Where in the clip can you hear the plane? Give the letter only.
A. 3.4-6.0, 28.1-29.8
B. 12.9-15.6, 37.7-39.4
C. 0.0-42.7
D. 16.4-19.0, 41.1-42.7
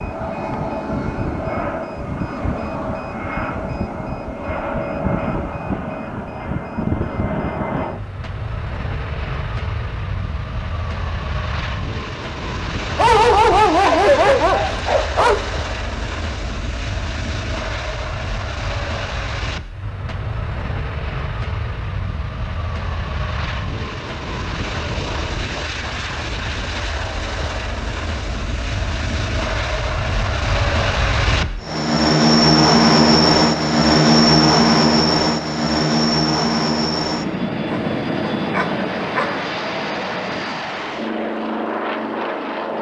C.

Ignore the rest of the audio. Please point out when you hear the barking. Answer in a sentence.
The barking can be heard from 12.9 to 15.6 s and from 37.7 to 39.4 s.